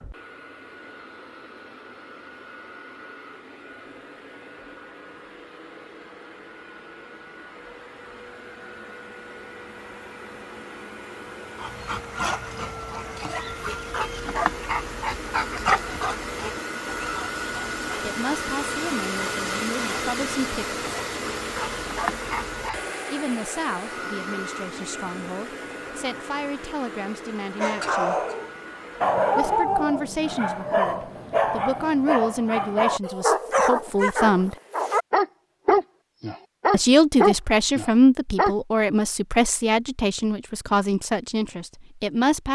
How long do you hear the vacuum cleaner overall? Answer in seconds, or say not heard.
30 s.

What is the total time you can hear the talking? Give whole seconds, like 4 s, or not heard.
19 s.